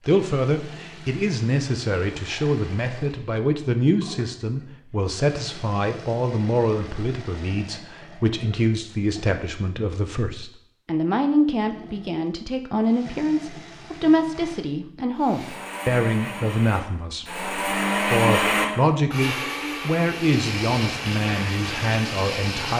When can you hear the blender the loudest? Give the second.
18 s.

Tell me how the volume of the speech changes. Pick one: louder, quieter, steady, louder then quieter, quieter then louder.
steady.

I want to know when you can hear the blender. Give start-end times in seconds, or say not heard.
15.2-22.7.